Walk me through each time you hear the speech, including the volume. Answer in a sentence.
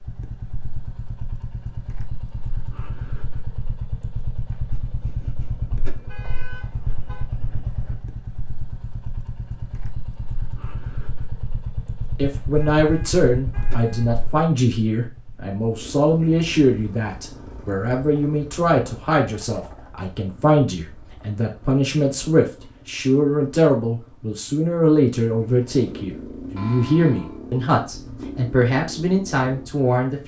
The speech can be heard from 12.2 to 30.2 s, at a steady volume.